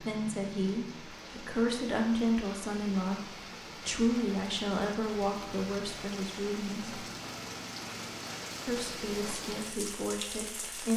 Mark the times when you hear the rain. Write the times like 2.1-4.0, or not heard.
0.0-10.9.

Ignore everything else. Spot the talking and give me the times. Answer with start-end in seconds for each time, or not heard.
0.0-7.0, 8.7-10.9.